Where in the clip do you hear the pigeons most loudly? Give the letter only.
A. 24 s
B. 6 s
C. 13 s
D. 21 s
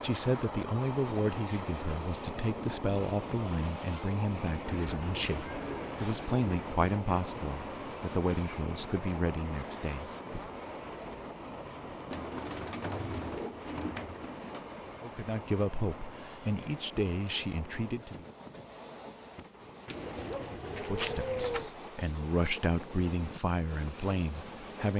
D.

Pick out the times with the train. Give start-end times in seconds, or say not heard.
0.0-24.9.